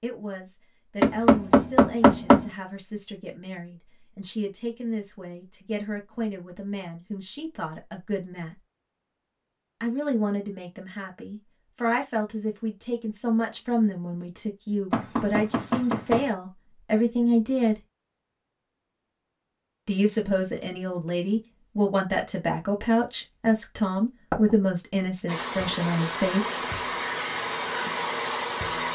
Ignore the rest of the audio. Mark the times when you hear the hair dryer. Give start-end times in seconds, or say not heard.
25.2-28.9.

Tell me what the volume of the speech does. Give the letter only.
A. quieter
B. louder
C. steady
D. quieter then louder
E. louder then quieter
B.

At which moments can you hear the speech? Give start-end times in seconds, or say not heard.
0.0-8.6, 9.8-17.8, 19.9-26.6.